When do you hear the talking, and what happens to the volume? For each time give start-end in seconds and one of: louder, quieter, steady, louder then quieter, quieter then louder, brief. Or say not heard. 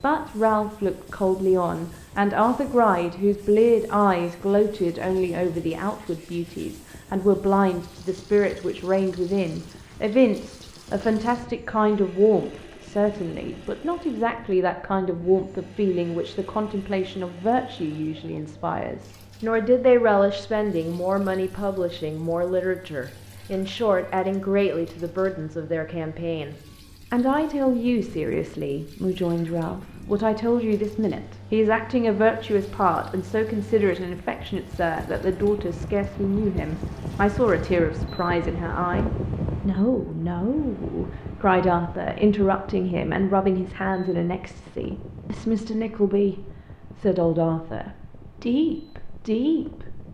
0.0-50.0 steady.